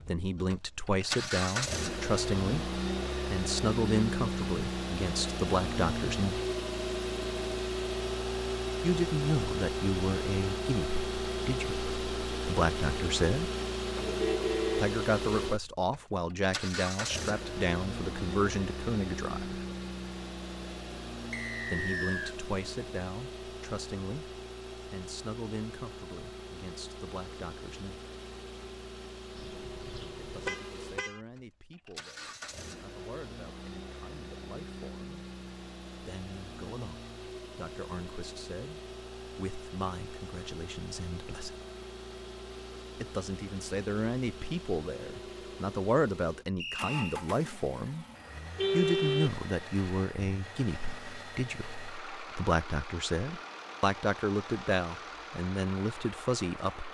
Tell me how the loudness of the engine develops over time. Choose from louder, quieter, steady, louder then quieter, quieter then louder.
quieter.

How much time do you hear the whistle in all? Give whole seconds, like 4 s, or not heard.
2 s.